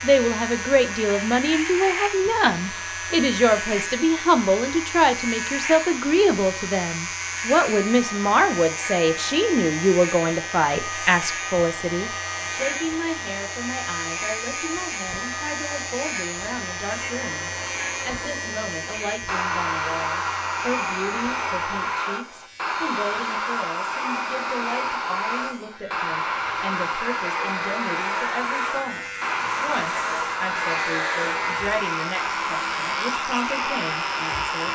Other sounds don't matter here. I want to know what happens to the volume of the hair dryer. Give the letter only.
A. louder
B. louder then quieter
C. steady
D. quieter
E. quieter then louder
A.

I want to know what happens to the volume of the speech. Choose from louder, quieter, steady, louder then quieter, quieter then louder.
quieter.